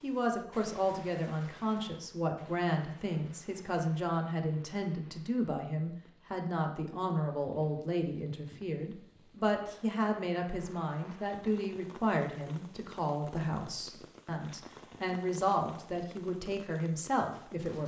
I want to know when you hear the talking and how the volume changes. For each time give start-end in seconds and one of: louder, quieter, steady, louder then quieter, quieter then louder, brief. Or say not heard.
0.0-17.8 steady.